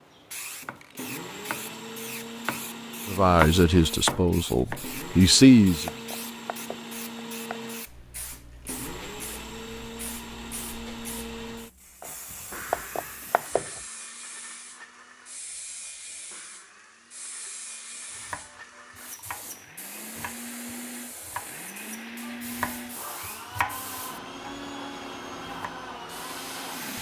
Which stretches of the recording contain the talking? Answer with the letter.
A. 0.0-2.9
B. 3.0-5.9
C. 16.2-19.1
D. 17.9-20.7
B.